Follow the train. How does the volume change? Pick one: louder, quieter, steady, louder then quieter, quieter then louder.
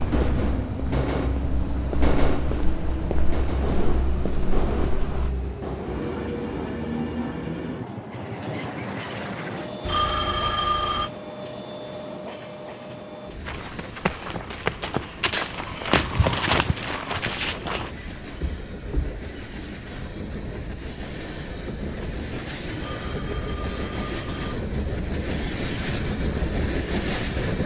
quieter then louder.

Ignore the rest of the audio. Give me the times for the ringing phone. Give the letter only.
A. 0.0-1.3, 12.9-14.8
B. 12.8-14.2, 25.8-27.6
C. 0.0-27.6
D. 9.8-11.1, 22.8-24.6
D.